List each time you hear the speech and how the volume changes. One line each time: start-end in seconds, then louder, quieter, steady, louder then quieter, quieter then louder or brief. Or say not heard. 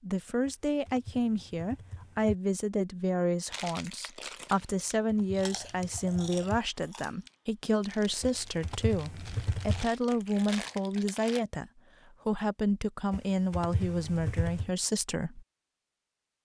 0.0-15.4 steady.